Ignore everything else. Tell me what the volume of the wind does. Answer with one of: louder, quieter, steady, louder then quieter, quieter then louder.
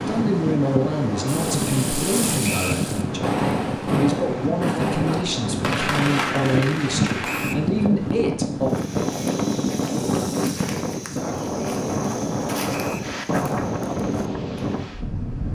steady.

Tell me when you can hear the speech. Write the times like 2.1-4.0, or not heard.
0.0-8.7.